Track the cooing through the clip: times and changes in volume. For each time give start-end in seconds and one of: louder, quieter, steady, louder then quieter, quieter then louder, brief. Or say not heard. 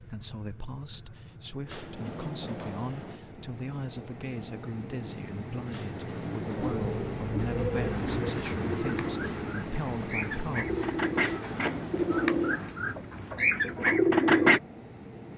6.5-14.6 louder.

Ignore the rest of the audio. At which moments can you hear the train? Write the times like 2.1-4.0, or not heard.
0.0-15.3.